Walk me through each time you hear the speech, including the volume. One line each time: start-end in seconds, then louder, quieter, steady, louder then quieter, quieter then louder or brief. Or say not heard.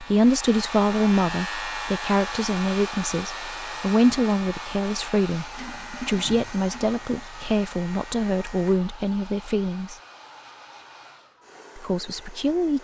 0.0-9.9 steady
11.8-12.8 brief.